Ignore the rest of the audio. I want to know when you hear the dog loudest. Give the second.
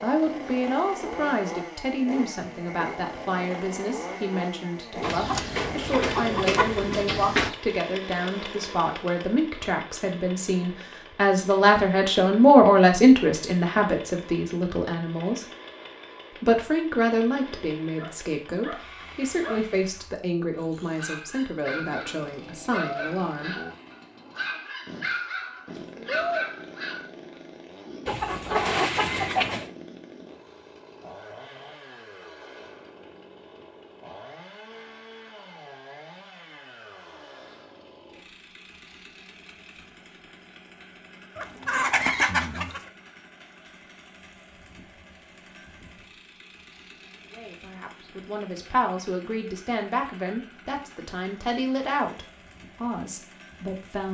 26 s.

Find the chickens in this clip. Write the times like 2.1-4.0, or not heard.
5.0-7.5, 28.1-29.7, 41.4-42.8.